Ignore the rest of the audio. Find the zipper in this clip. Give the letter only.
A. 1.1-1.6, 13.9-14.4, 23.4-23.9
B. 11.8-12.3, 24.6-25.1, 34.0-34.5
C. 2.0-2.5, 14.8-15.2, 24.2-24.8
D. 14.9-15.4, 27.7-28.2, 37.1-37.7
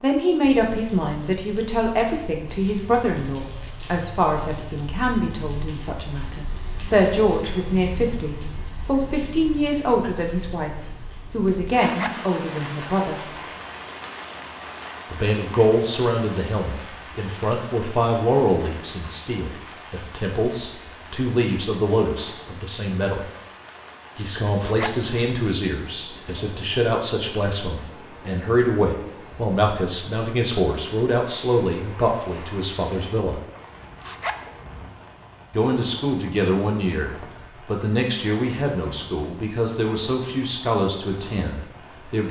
B.